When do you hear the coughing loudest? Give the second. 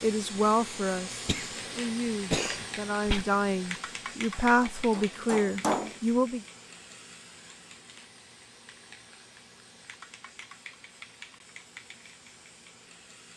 2 s.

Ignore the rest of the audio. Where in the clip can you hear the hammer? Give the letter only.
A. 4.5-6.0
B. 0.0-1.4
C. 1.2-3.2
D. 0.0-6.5
A.